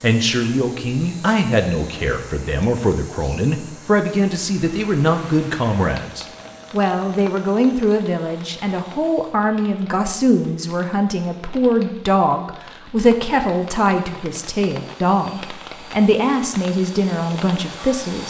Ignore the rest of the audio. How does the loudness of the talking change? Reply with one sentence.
The loudness of the talking stays about the same.